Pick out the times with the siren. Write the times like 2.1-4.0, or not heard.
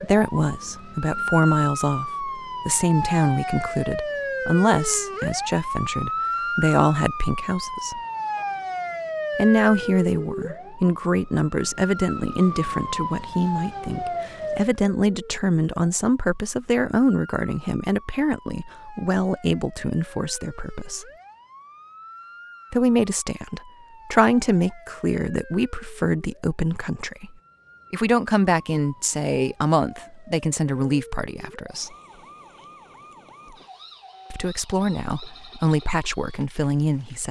0.0-37.2.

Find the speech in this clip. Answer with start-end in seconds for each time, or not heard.
0.0-8.0, 9.3-21.1, 22.7-27.3, 27.9-31.9, 34.3-37.2.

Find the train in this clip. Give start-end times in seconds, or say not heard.
not heard.